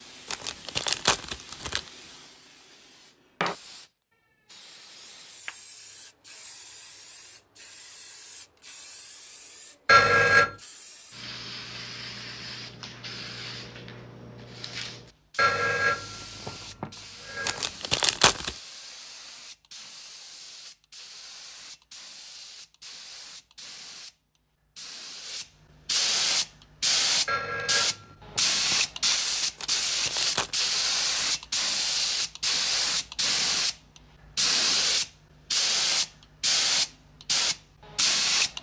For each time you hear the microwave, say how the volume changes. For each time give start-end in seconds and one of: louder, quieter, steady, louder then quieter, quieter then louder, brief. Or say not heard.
not heard.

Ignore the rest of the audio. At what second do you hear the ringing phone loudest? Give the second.
10 s.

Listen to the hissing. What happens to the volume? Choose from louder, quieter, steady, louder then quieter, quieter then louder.
louder.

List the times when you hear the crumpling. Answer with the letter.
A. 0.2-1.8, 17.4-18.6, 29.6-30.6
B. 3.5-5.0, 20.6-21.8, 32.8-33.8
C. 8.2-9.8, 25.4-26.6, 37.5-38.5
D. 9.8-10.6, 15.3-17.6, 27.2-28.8
A.